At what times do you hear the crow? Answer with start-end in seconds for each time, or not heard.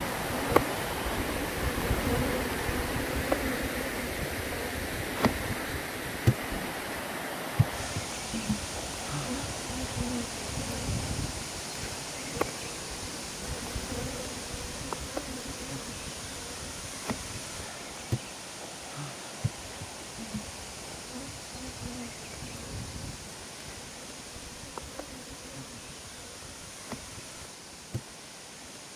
not heard.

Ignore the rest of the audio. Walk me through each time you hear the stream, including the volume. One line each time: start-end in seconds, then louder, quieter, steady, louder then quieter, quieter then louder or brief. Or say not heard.
0.0-28.9 quieter.